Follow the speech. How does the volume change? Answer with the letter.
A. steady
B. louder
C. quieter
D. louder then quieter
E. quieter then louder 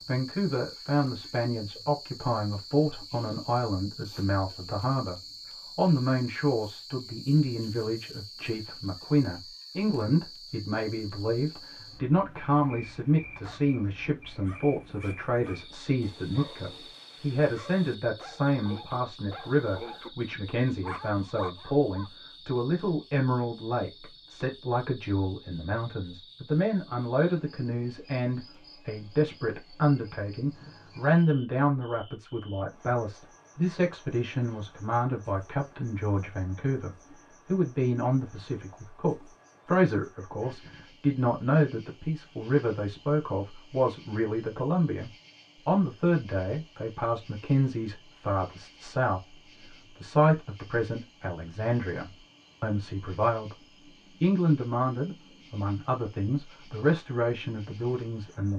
A.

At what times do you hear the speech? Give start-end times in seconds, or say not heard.
0.1-53.5, 54.2-58.5.